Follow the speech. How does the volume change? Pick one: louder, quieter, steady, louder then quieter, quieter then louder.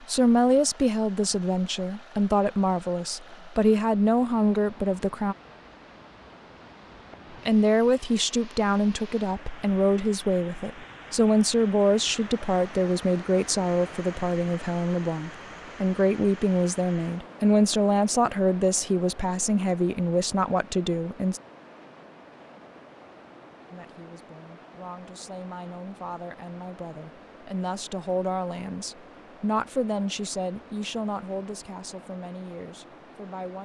quieter.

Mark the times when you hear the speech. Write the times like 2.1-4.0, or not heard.
0.1-5.3, 7.5-21.4, 23.7-33.6.